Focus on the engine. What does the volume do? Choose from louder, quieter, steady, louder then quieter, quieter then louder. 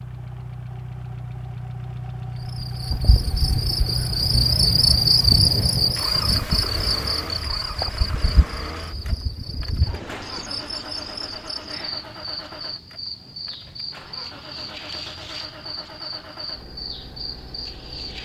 quieter.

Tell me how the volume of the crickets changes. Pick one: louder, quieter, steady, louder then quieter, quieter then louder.
quieter.